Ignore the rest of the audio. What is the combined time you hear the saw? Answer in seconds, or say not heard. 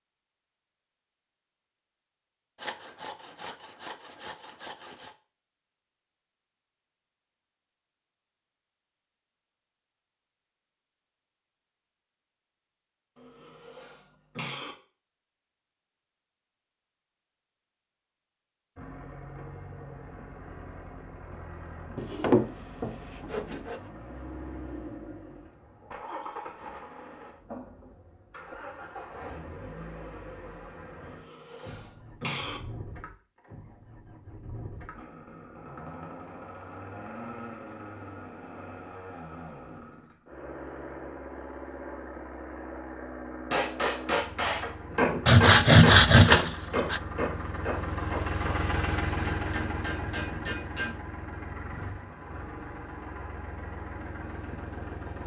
6 s.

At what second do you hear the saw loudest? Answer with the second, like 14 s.
46 s.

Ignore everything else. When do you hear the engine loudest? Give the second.
49 s.